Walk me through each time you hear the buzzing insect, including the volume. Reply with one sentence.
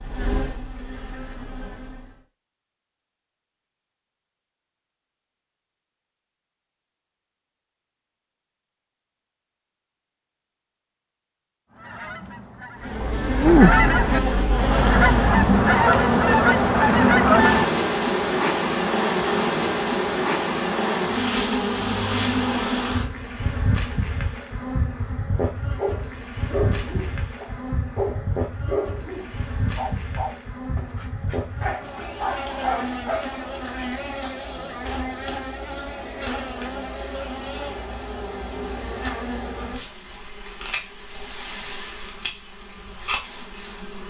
The buzzing insect can be heard briefly from 0.0 to 2.2 s; and from 12.8 to 44.0 s, getting quieter.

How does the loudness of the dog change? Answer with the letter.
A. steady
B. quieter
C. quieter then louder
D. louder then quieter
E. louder
C.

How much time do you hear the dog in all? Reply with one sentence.
The dog can be heard for 8 seconds in total.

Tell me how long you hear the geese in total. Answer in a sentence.
The geese can be heard for 6 seconds in total.